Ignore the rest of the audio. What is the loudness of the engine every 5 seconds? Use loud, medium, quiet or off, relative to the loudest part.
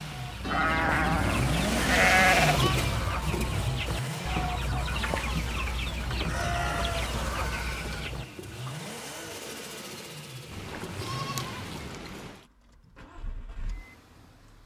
loud, medium, quiet.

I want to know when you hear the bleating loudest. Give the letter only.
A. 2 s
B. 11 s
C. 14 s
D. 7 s
A.